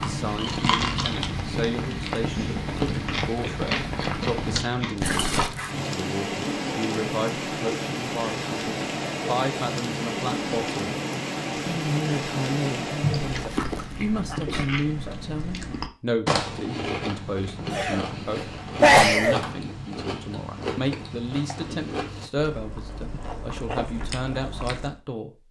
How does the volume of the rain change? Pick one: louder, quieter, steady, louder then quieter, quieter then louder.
steady.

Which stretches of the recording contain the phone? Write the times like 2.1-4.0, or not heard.
not heard.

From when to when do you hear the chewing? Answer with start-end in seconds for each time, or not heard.
0.0-5.8, 13.2-25.0.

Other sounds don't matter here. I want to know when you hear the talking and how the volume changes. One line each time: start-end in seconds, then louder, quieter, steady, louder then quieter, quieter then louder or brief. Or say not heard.
0.0-10.8 steady
11.7-25.4 steady.